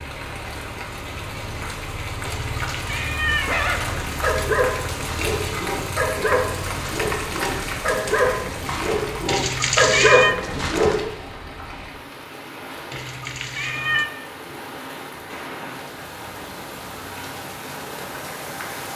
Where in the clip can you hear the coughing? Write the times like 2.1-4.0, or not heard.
not heard.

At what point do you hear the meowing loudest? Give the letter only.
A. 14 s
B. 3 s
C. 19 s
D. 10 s
D.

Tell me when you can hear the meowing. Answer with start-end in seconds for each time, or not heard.
2.2-4.0, 9.2-10.3, 12.9-14.1.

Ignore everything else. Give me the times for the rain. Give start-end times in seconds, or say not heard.
0.0-18.9.